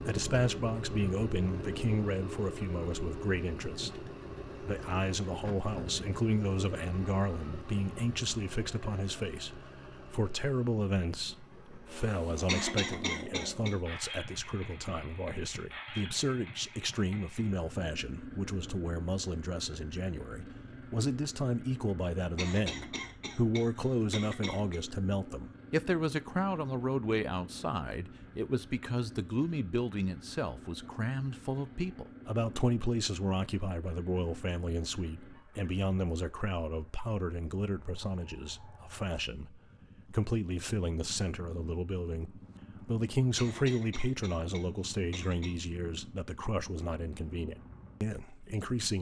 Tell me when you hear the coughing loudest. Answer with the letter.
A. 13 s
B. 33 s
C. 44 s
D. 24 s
A.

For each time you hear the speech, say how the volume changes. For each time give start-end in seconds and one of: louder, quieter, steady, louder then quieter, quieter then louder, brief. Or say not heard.
0.0-48.9 steady.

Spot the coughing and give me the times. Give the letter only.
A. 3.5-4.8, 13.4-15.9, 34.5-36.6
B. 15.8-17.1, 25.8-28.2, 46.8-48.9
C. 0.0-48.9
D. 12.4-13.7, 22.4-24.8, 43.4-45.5
D.